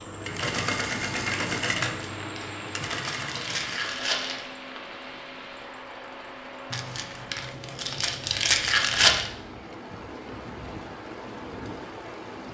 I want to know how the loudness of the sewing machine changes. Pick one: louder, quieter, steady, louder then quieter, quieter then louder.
quieter.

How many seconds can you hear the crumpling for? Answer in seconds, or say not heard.
5 s.